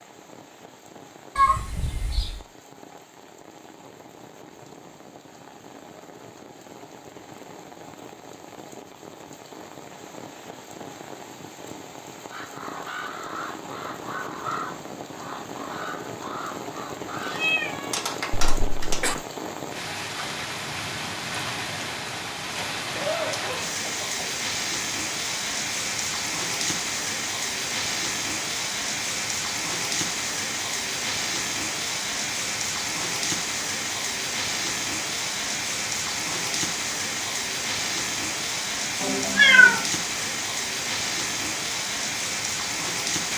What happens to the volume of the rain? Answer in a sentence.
The loudness of the rain goes up.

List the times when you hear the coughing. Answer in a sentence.
You can hear the coughing from 18.3 to 19.2 s and from 22.9 to 24.4 s.